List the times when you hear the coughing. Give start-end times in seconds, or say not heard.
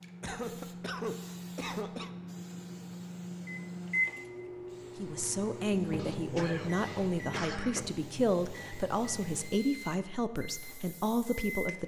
0.2-2.1, 6.0-7.9.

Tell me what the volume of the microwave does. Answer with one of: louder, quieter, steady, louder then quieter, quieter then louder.
louder then quieter.